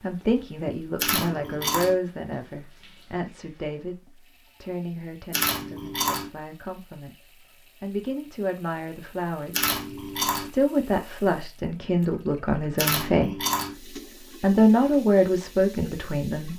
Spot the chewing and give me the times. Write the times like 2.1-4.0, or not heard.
0.9-1.9, 5.3-6.3, 9.5-10.5, 12.8-13.8.